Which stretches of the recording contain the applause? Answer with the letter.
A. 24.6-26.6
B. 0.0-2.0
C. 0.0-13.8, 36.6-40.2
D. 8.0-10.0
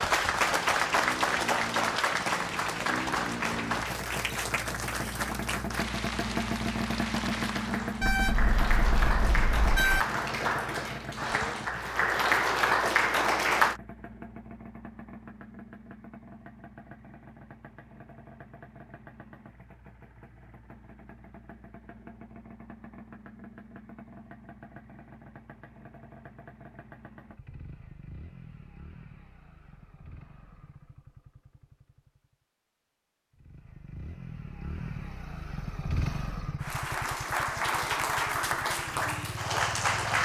C.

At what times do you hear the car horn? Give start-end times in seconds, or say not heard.
8.0-10.0.